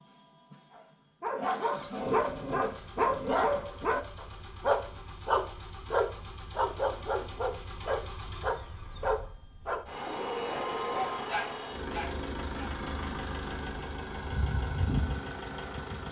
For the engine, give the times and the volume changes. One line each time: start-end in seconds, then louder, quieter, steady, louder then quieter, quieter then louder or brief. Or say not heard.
0.0-16.0 louder.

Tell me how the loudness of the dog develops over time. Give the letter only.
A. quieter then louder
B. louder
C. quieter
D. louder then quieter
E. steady
C.